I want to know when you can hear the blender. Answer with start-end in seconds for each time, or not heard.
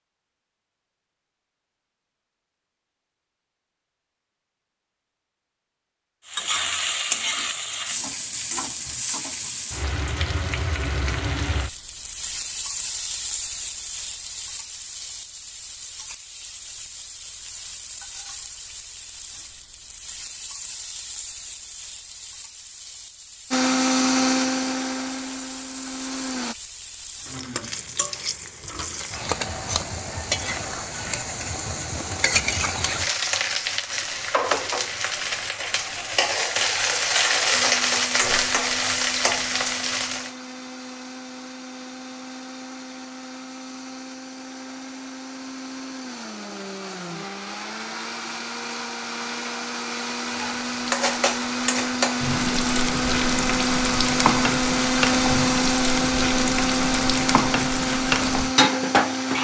23.5-26.6, 37.5-59.3.